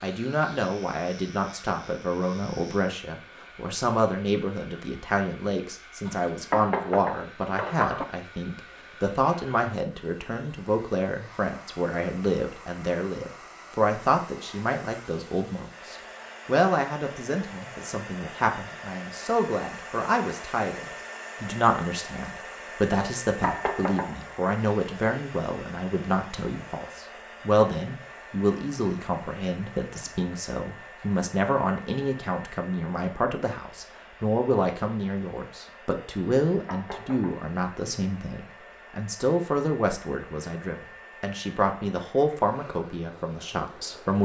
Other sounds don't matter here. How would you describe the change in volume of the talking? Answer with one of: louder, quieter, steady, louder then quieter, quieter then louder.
steady.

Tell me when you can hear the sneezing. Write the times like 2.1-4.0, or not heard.
not heard.